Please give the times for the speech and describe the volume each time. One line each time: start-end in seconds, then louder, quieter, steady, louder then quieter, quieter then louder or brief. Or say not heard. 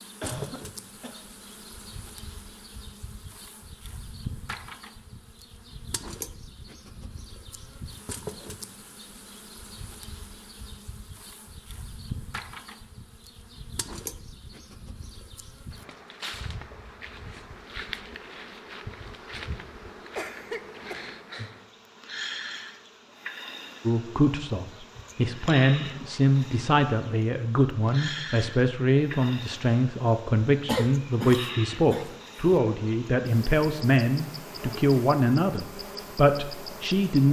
23.9-37.2 steady.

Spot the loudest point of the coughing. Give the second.
31 s.